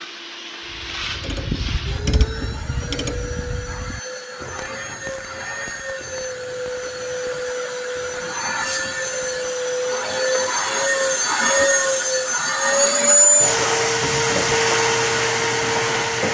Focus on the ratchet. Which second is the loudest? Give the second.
2 s.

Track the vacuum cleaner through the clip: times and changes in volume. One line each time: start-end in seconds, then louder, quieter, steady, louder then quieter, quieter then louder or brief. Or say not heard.
0.0-16.2 louder.